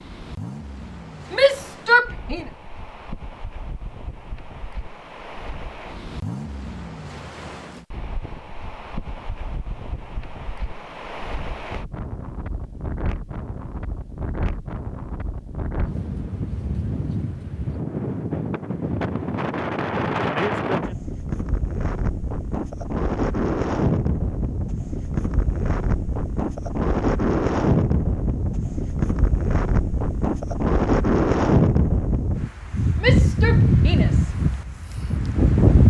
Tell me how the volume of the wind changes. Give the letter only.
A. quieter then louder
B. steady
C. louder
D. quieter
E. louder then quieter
C.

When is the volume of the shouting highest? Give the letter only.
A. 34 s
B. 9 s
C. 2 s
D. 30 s
C.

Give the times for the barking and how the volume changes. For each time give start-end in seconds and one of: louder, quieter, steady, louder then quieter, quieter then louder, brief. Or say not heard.
not heard.